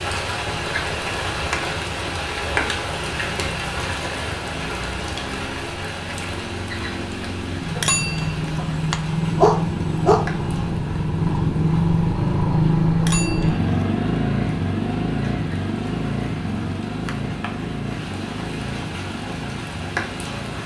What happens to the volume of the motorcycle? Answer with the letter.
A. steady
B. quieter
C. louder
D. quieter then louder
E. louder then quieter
E.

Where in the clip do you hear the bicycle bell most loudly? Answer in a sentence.
The volume of the bicycle bell peaks at 8 seconds.